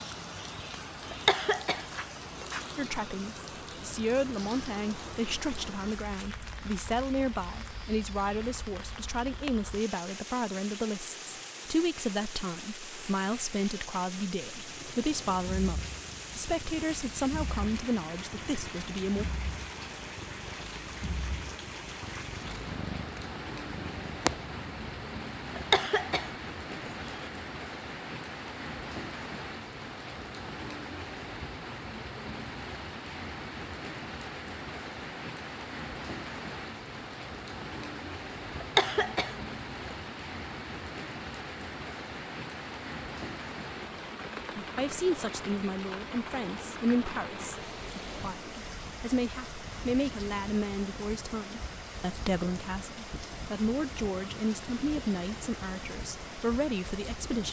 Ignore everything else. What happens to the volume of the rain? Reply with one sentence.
The volume of the rain stays about the same.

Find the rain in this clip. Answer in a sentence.
The rain can be heard from 0.0 to 57.4 s.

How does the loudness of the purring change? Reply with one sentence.
The volume of the purring goes up.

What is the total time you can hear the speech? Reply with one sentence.
The speech can be heard for 29 seconds in total.